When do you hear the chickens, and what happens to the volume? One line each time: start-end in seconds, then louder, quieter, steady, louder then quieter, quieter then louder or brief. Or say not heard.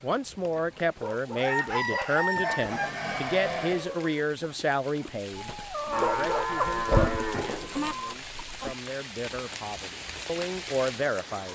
0.6-8.8 quieter then louder.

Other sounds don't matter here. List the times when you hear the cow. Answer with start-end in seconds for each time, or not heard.
2.6-3.9, 5.9-8.0.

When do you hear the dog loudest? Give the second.
7 s.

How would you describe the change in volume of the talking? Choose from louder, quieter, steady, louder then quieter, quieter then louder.
quieter then louder.